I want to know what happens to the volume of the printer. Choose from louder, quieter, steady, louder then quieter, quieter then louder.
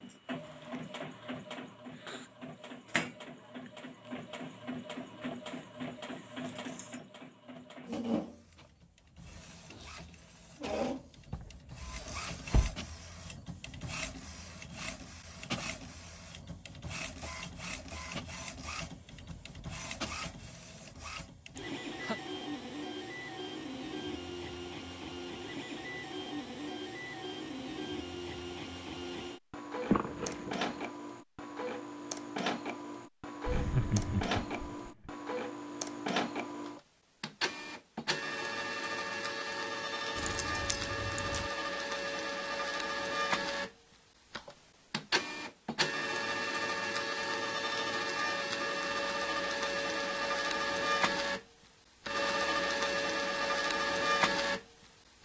louder.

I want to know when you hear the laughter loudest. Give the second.
34 s.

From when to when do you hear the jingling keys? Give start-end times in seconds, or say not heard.
11.3-12.8, 29.9-30.9, 40.1-41.5.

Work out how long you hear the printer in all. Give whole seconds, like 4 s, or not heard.
55 s.